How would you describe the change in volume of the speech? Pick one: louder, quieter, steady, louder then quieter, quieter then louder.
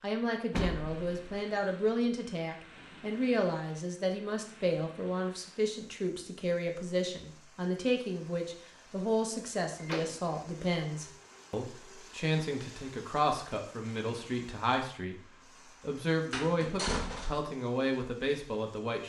steady.